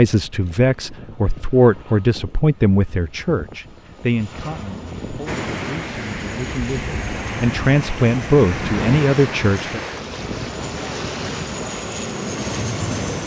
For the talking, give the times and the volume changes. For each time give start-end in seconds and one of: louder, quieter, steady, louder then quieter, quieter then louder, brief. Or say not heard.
0.0-9.8 quieter then louder.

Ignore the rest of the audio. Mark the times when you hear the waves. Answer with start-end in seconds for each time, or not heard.
5.2-13.1.